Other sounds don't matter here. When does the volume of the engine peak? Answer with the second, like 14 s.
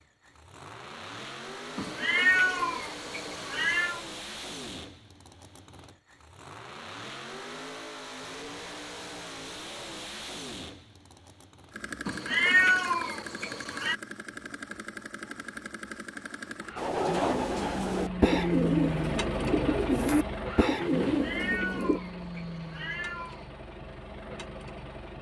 19 s.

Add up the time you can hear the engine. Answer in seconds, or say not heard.
25 s.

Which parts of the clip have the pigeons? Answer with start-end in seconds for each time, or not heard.
16.8-22.0.